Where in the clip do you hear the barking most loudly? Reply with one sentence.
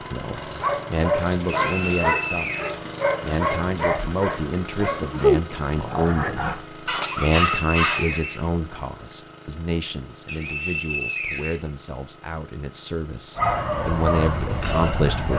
The volume of the barking peaks at 5 seconds.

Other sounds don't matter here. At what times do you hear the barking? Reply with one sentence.
You can hear the barking from 0.3 to 8.2 s and from 13.3 to 15.3 s.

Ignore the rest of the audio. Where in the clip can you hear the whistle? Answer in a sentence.
You can hear the whistle from 1.7 to 2.8 s, from 7.3 to 8.4 s and from 10.2 to 11.7 s.